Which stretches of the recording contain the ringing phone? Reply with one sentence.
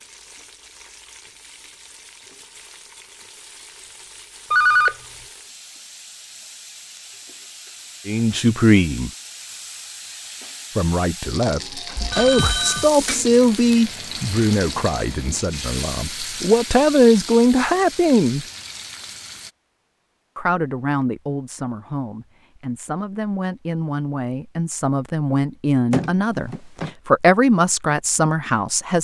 You can hear the ringing phone from 4.5 to 5.0 s, from 11.9 to 12.9 s and from 25.9 to 26.9 s.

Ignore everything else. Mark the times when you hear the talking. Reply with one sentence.
The talking can be heard from 8.1 to 9.1 s, from 10.8 to 18.4 s and from 20.4 to 28.9 s.